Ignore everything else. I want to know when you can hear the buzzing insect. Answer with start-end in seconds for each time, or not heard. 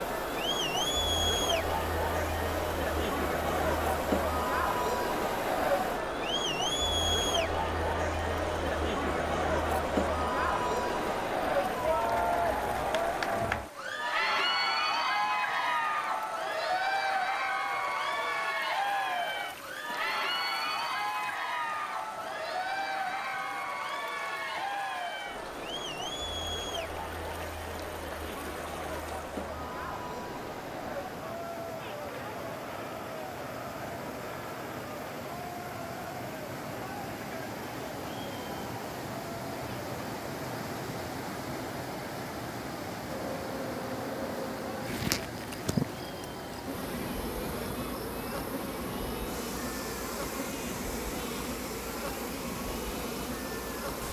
43.0-54.0.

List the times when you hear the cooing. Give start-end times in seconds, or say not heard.
not heard.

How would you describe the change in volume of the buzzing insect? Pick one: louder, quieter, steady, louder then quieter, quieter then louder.
steady.